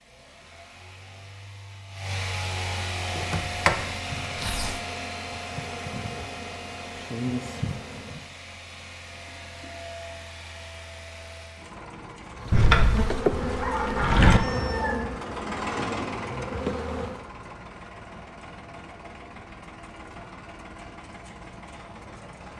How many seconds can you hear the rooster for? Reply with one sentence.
You can hear the rooster for 2 seconds altogether.